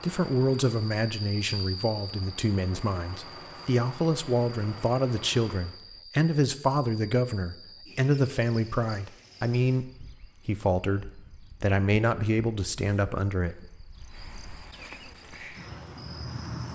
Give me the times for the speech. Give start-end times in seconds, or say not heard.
0.0-13.7.